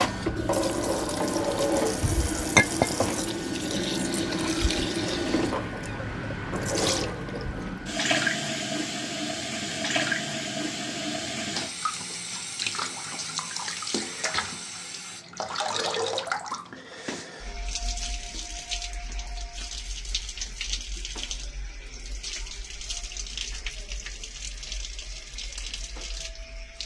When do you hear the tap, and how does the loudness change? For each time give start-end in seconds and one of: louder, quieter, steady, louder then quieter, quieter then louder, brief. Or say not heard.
0.0-26.8 quieter.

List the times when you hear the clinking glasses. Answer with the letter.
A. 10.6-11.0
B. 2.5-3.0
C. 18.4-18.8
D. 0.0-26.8
B.